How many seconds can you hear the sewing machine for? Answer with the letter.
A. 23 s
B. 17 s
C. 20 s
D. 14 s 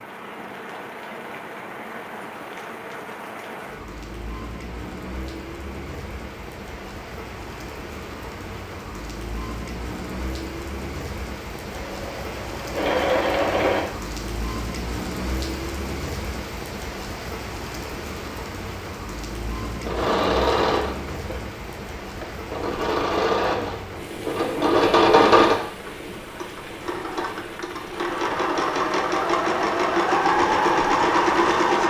D.